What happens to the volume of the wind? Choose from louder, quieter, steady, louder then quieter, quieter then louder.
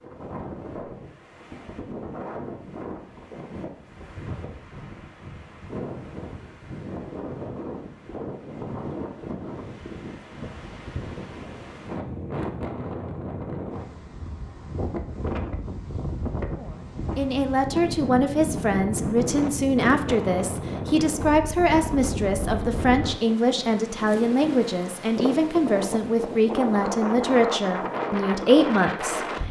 louder.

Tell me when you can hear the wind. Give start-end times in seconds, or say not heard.
0.0-29.4.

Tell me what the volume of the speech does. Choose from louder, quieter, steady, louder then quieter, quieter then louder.
steady.